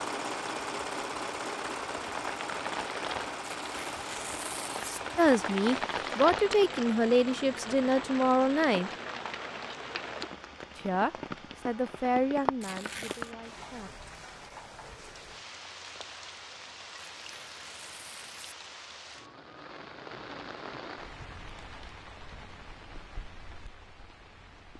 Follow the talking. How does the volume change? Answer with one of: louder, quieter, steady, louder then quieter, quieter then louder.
quieter.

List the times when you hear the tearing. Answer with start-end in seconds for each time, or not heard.
3.5-5.0, 12.6-13.3, 17.1-18.6.